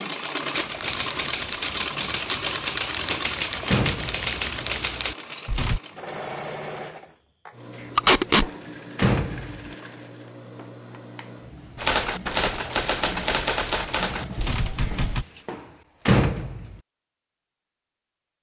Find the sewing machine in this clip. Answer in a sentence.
You can hear the sewing machine from 0.0 to 15.3 s.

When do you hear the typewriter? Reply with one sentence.
The typewriter can be heard from 0.5 to 5.8 s and from 11.8 to 15.2 s.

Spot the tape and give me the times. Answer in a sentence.
You can hear the tape from 8.0 to 8.5 s.